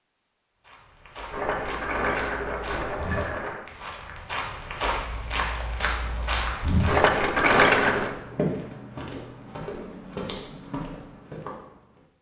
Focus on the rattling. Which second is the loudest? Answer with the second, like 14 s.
8 s.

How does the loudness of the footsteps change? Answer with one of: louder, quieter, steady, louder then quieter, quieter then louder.
louder then quieter.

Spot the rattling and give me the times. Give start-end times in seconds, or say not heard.
1.3-3.6, 6.8-8.1.